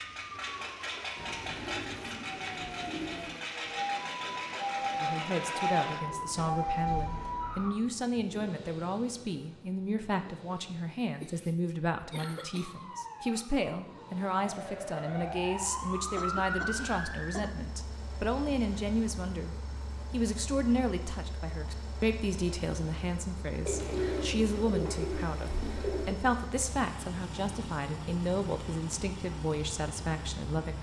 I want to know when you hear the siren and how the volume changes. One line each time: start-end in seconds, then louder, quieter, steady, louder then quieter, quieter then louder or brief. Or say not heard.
0.0-7.8 louder
12.3-17.4 quieter then louder.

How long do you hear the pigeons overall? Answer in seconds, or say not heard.
5 s.